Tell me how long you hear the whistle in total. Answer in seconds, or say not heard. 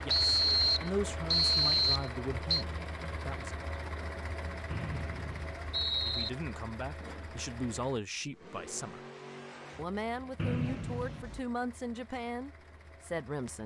5 s.